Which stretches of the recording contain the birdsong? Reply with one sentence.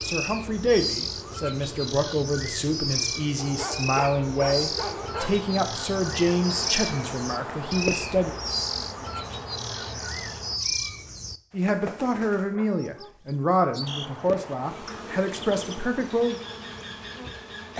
You can hear the birdsong from 0.0 to 17.7 s.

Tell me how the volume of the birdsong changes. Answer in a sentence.
The volume of the birdsong goes down.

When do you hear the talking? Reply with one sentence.
You can hear the talking from 0.0 to 8.3 s and from 11.5 to 16.4 s.